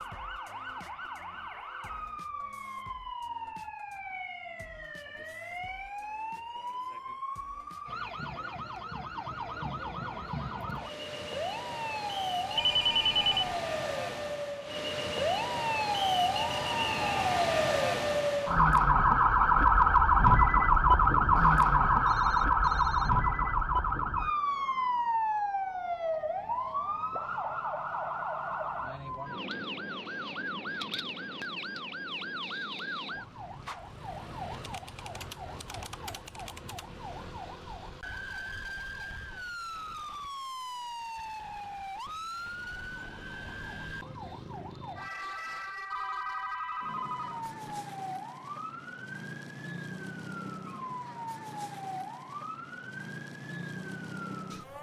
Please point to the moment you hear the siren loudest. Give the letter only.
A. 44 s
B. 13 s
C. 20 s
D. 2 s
C.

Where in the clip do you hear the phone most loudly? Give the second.
13 s.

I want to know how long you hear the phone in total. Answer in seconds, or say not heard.
4 s.